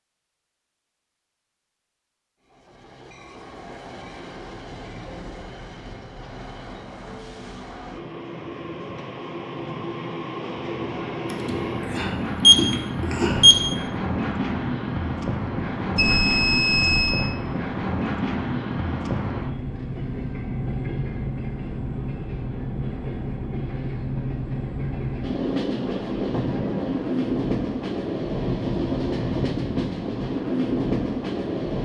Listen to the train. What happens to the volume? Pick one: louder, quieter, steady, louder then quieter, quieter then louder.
louder.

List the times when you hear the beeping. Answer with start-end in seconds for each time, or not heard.
11.3-13.6, 15.9-17.1.